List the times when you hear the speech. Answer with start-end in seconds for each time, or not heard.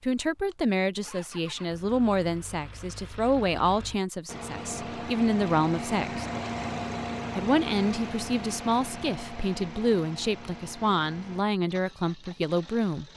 0.0-6.2, 7.3-13.1.